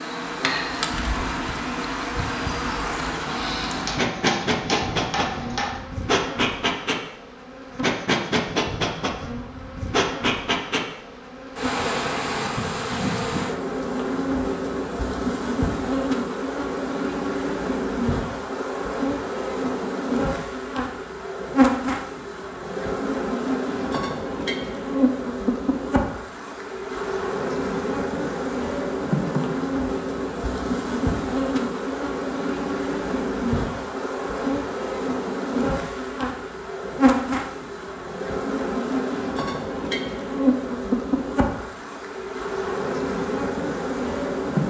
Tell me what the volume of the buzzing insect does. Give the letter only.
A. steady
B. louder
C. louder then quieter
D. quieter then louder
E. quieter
A.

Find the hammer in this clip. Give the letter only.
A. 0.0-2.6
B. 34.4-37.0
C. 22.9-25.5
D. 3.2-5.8
D.